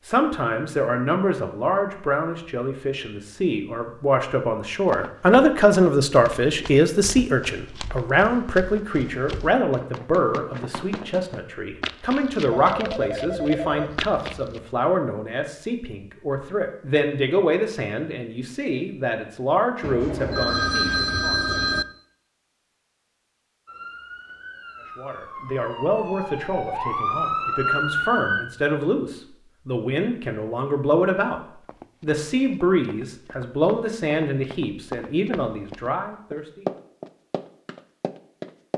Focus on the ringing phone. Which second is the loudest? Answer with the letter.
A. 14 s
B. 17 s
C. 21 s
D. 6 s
C.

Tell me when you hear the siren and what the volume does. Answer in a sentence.
You can hear the siren from 23.6 to 28.4 s, getting louder.